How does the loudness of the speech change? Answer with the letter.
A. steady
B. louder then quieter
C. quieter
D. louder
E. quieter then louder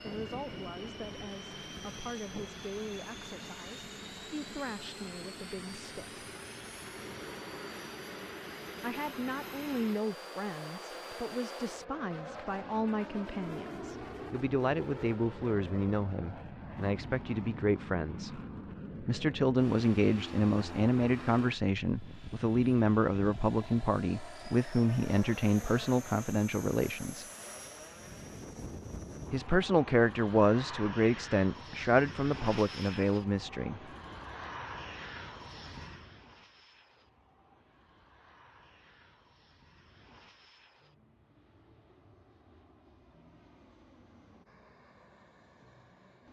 D.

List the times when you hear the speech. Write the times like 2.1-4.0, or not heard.
0.0-6.2, 8.8-18.3, 19.0-27.2, 29.3-33.8.